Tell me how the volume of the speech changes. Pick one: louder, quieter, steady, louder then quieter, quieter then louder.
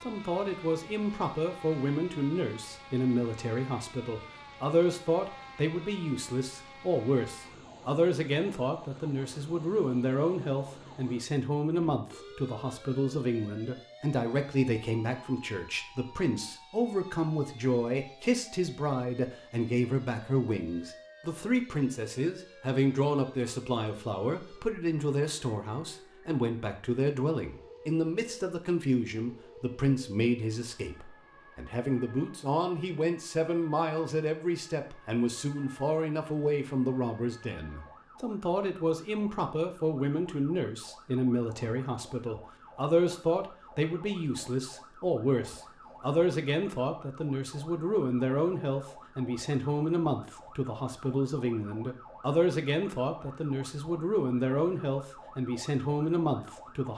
steady.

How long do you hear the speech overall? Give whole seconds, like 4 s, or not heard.
57 s.